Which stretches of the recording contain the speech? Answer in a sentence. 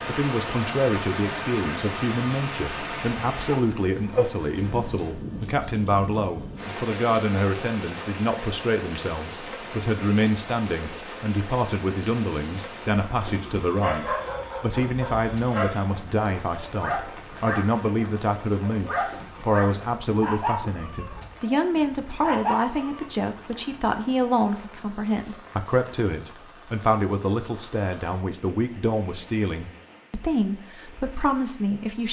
The speech can be heard from 0.1 to 32.0 s.